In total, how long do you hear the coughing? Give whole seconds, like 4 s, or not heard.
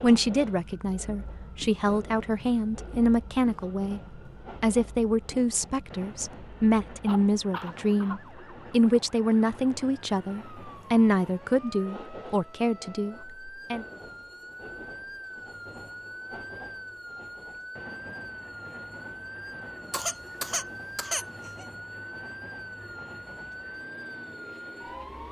3 s.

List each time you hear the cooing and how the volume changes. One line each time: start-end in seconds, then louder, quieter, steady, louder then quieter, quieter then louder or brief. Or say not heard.
not heard.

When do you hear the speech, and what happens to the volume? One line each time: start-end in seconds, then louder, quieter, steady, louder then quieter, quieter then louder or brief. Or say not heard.
0.0-13.8 steady.